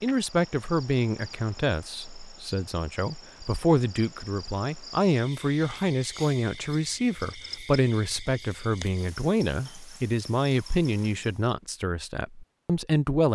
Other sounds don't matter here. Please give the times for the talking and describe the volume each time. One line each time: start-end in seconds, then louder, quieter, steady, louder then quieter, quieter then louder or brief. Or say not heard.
0.0-13.3 steady.